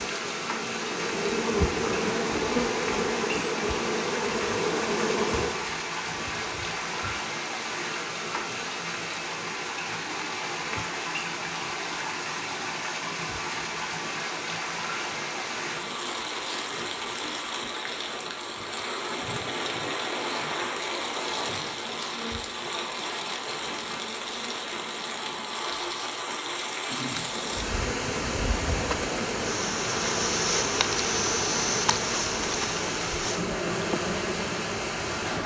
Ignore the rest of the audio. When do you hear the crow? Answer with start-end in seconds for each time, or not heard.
not heard.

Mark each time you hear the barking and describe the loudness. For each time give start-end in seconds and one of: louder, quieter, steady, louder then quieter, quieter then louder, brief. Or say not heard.
not heard.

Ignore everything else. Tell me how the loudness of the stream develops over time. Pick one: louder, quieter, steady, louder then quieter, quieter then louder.
steady.